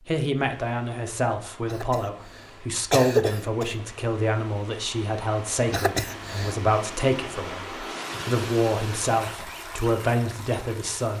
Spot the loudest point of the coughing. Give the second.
3 s.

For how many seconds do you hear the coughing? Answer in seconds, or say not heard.
3 s.